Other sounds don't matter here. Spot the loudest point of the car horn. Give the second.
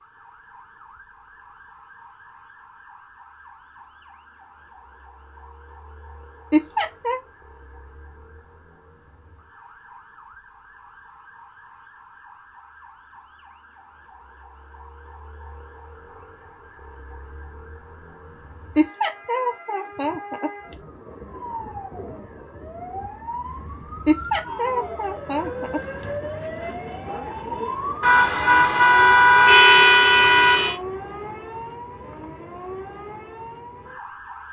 30 s.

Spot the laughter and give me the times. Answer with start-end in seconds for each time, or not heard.
6.5-7.2, 18.8-20.8, 24.1-26.1.